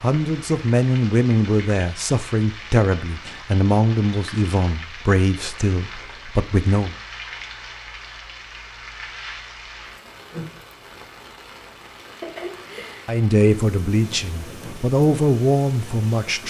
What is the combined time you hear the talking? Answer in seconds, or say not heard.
10 s.